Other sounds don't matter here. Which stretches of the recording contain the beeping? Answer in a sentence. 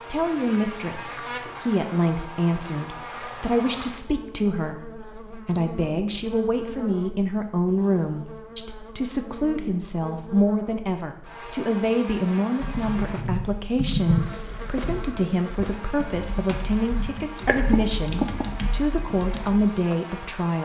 The beeping can't be heard in this clip.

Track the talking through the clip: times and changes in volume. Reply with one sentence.
The talking can be heard from 0.1 to 20.6 s, at a steady volume.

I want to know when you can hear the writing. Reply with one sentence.
The writing can't be heard in this clip.